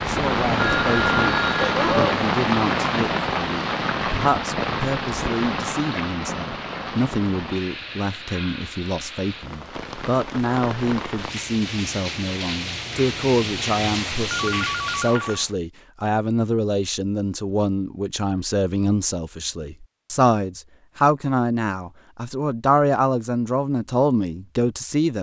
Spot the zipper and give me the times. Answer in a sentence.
The zipper can't be heard in this clip.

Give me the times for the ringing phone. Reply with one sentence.
The ringing phone can be heard from 0.6 to 2.1 s and from 14.3 to 15.4 s.